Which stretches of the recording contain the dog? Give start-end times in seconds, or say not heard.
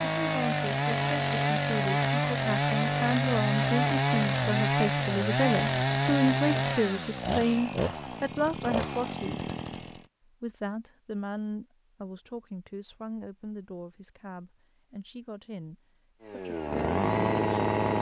not heard.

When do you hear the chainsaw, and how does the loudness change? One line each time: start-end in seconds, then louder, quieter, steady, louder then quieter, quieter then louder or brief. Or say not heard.
0.0-10.1 quieter
16.2-17.9 brief.